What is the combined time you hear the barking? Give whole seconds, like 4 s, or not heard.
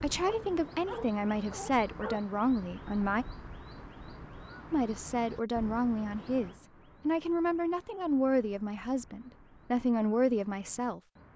2 s.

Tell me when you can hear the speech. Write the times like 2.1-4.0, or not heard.
0.0-3.2, 4.7-11.0.